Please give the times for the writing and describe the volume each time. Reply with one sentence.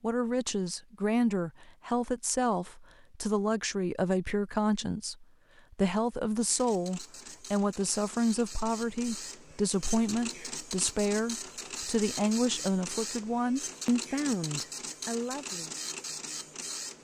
You can't hear the writing here.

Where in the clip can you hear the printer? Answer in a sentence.
The printer can be heard from 6.5 to 16.9 s.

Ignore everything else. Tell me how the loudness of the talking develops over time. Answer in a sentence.
The loudness of the talking stays about the same.